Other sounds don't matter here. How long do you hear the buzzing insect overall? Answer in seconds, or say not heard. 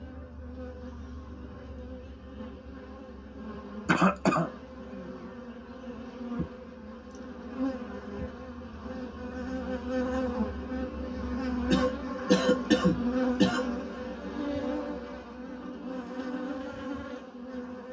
18 s.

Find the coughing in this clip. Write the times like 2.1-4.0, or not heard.
3.9-4.5, 11.7-13.7.